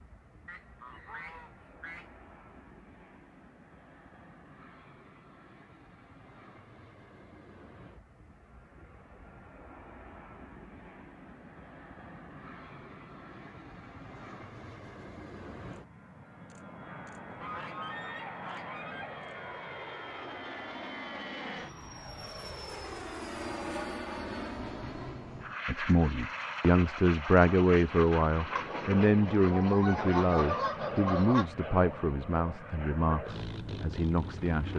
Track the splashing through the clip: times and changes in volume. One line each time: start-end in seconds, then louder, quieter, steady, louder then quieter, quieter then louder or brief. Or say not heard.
not heard.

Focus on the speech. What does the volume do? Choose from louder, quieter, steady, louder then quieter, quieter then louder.
quieter.